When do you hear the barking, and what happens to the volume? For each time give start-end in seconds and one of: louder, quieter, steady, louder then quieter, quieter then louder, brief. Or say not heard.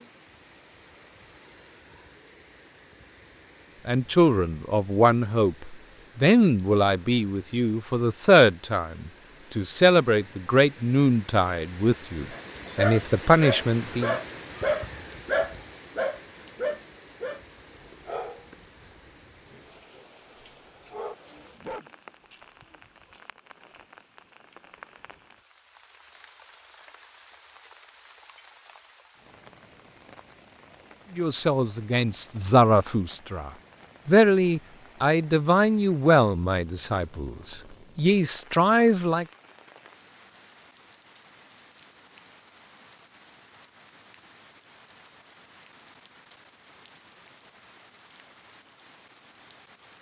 12.3-21.9 quieter.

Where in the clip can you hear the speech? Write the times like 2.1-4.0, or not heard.
3.9-14.2, 31.1-39.2.